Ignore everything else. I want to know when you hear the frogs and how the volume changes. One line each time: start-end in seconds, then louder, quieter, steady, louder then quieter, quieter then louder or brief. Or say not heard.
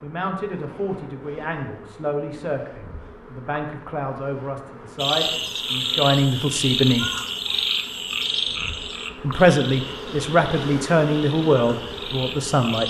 5.0-12.8 quieter.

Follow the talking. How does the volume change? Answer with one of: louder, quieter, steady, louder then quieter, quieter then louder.
louder.